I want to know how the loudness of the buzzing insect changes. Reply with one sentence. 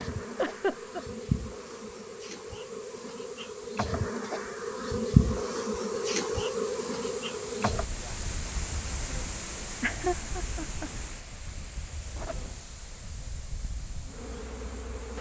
The volume of the buzzing insect goes up, then down.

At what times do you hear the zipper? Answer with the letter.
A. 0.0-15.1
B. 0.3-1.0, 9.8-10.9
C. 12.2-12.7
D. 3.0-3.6
C.